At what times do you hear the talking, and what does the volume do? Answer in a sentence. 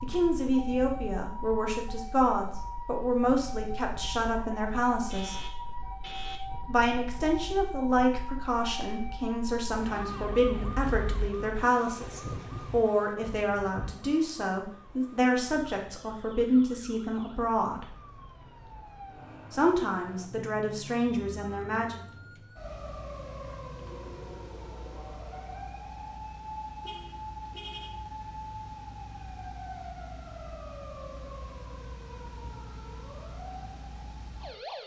You can hear the talking from 0.0 to 5.3 s, at a steady volume; from 6.7 to 17.9 s, at a steady volume; and briefly from 19.5 to 22.0 s.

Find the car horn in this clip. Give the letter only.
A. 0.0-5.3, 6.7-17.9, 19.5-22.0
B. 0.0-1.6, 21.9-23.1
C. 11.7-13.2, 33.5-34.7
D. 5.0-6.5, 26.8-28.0
D.